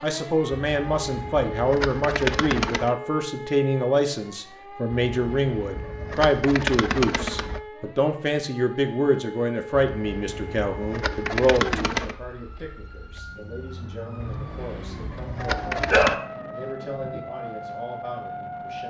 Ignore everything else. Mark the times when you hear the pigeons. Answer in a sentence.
You can hear the pigeons from 0.6 to 3.0 s, from 4.9 to 7.6 s, from 9.8 to 12.2 s and from 14.2 to 16.1 s.